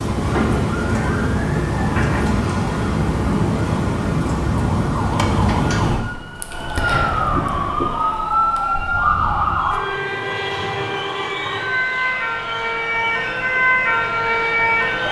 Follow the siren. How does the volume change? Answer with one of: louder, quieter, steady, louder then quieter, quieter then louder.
steady.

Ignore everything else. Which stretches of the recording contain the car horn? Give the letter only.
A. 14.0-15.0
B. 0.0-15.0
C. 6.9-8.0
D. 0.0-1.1
C.